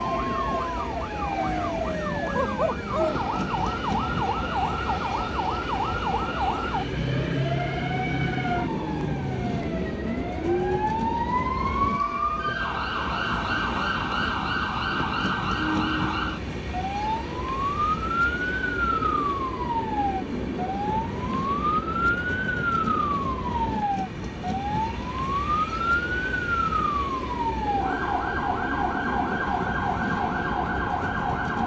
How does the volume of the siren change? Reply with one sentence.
The loudness of the siren stays about the same.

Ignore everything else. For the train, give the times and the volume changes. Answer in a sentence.
The train can be heard from 0.0 to 31.6 s, at a steady volume.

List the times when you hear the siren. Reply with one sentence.
You can hear the siren from 0.0 to 31.6 s.